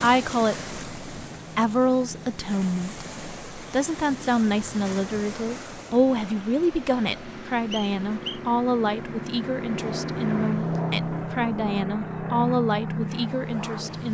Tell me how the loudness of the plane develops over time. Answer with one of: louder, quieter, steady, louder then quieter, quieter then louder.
louder.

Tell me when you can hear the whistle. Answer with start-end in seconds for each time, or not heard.
7.7-8.4.